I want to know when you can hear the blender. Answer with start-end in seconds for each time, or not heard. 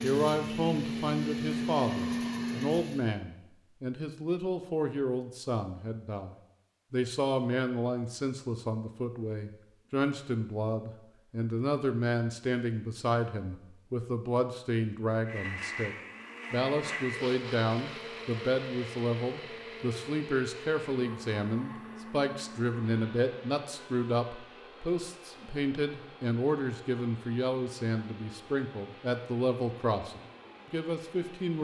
0.0-3.2, 15.2-31.5.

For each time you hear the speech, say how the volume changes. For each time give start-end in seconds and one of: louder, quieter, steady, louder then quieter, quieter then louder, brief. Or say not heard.
0.0-31.5 steady.